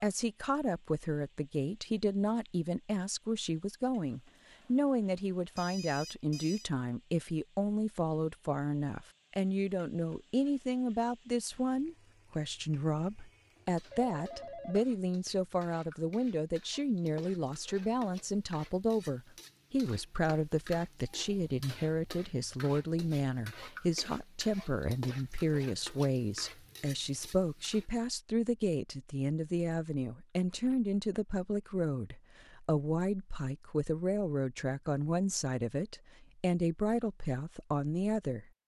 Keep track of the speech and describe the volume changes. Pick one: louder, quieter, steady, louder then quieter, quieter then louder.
steady.